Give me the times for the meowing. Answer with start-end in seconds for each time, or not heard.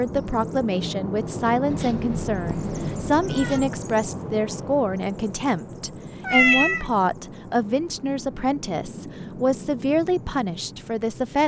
1.7-3.7, 6.2-6.8.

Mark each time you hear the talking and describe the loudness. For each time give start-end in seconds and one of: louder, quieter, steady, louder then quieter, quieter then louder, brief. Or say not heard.
0.0-11.4 steady.